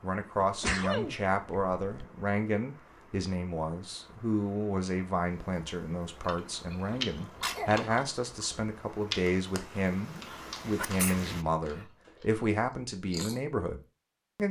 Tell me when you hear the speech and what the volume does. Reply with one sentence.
The speech can be heard from 0.0 to 14.4 s, at a steady volume.